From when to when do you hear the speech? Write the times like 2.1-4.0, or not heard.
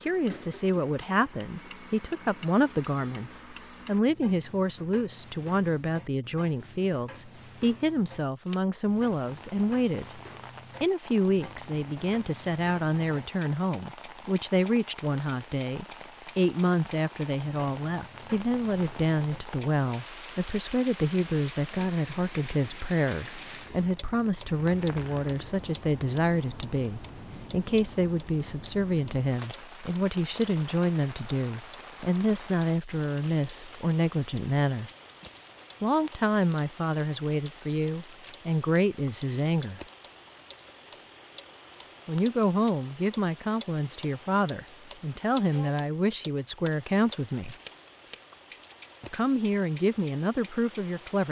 0.0-10.1, 10.8-34.9, 35.8-39.8, 42.0-47.5, 49.0-51.2.